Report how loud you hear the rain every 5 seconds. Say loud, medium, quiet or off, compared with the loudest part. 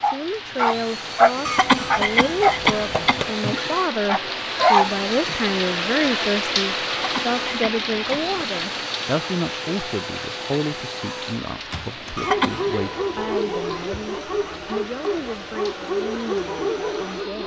loud, loud, medium, quiet.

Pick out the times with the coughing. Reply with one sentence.
You can hear the coughing from 1.4 to 3.3 s, from 6.9 to 8.4 s and from 12.2 to 12.8 s.